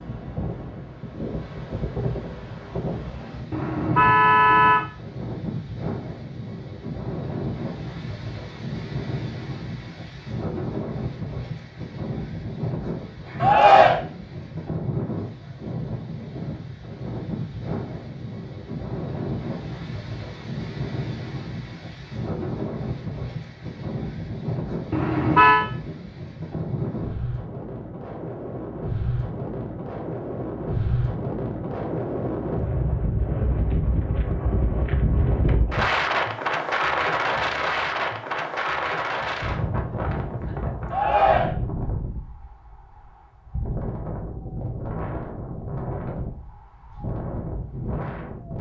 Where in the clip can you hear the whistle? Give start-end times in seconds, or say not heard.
not heard.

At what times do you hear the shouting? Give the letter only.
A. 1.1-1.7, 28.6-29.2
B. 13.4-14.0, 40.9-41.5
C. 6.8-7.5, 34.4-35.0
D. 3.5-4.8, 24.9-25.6
B.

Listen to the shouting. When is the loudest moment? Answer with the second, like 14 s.
14 s.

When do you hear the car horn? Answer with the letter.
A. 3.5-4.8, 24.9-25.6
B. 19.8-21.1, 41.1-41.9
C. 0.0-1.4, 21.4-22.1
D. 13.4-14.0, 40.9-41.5
A.